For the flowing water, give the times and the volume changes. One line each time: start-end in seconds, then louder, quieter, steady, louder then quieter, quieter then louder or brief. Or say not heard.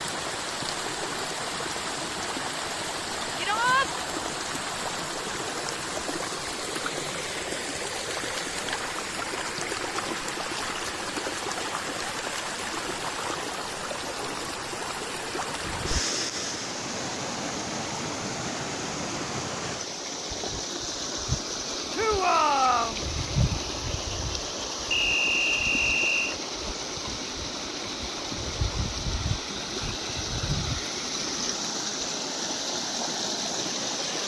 0.0-34.2 steady.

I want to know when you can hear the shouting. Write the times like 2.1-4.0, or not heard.
3.4-3.9, 21.9-23.0.